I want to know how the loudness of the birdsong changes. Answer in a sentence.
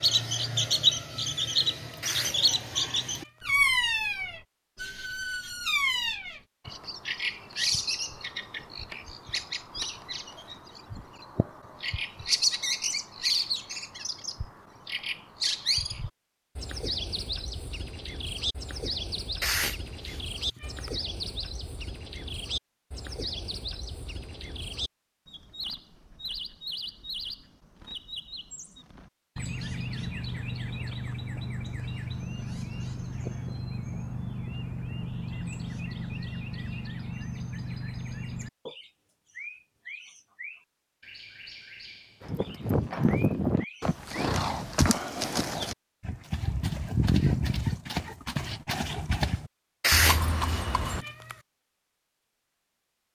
The loudness of the birdsong goes down.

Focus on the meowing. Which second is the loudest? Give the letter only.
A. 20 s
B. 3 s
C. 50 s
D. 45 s
C.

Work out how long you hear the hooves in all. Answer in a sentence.
You can hear the hooves for 9 seconds altogether.